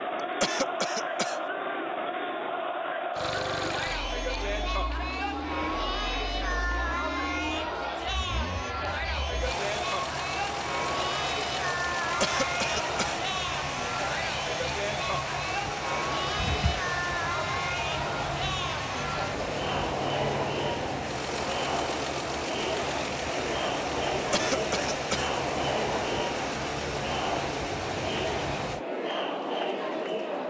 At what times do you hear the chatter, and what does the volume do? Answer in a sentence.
You can hear the chatter from 0.0 to 30.4 s, at a steady volume.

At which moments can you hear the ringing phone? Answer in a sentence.
You can hear the ringing phone from 16.4 to 16.9 s.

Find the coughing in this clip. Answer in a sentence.
The coughing can be heard from 0.4 to 1.4 s, from 12.2 to 13.2 s and from 24.3 to 25.3 s.